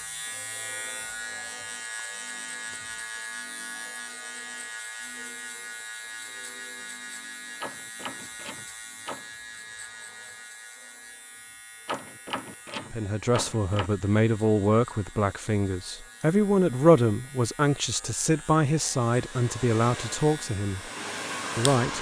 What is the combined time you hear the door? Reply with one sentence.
The door can be heard for 4 seconds in total.